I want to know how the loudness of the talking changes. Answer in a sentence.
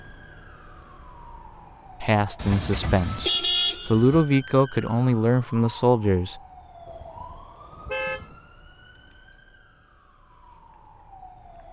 The volume of the talking goes down, then up.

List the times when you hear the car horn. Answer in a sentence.
The car horn can be heard from 2.4 to 4.2 s and from 6.8 to 8.4 s.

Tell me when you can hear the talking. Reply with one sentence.
The talking can be heard from 2.0 to 6.4 s.